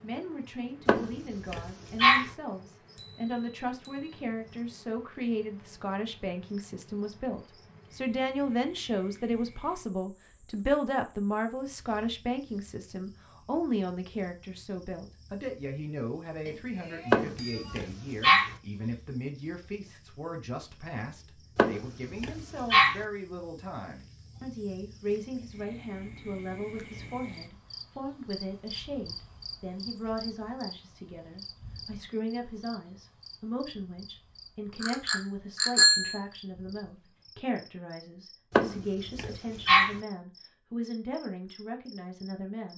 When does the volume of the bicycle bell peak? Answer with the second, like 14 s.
36 s.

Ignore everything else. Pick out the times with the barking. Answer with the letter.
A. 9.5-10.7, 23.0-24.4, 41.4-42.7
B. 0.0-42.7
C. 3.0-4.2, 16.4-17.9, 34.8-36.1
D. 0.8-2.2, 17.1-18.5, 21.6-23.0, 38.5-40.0
D.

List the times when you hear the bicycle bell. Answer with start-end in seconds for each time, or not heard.
3.0-4.2, 16.4-17.9, 34.8-36.1.